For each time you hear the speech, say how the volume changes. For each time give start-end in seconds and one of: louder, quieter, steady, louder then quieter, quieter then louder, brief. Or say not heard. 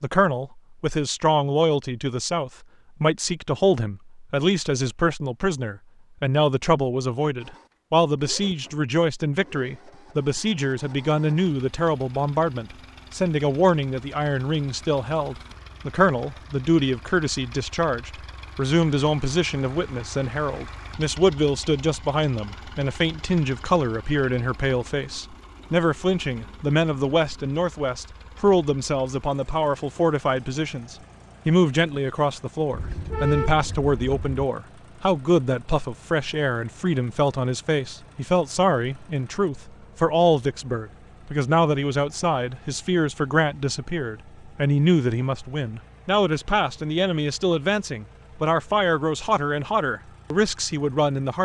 0.0-51.4 steady.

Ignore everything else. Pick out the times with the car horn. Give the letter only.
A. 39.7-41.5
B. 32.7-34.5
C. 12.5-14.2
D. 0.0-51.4
B.